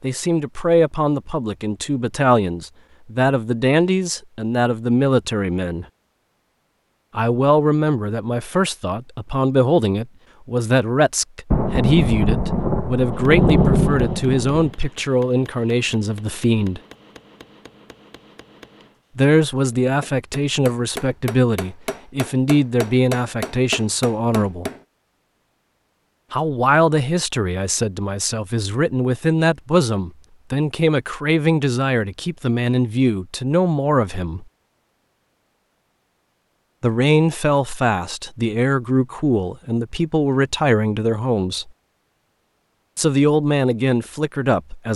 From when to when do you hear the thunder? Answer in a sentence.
You can hear the thunder from 11.5 to 14.8 s.